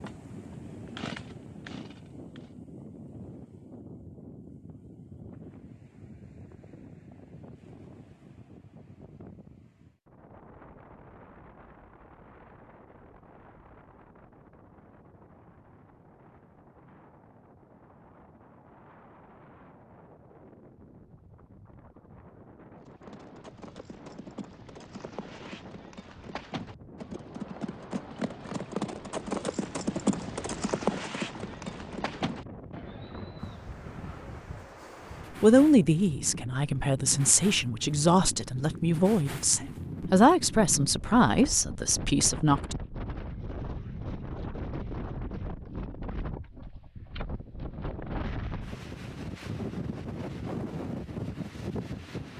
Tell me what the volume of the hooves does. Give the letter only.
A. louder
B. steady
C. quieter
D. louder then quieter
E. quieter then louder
D.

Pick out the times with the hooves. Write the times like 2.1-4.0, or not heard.
22.8-33.9.